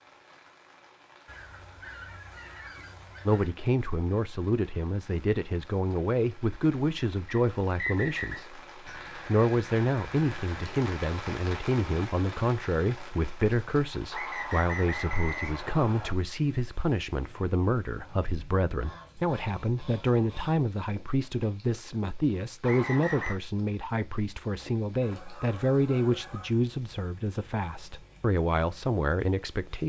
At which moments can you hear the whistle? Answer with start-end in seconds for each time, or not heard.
7.2-8.4, 14.1-16.1, 22.6-23.4.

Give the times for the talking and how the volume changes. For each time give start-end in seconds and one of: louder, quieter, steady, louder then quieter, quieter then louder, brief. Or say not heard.
3.2-29.8 steady.